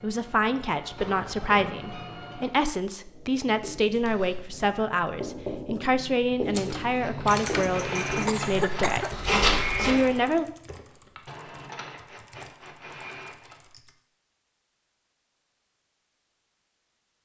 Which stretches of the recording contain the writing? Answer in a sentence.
You can hear the writing from 3.0 to 10.1 s.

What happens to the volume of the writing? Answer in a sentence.
The volume of the writing goes up.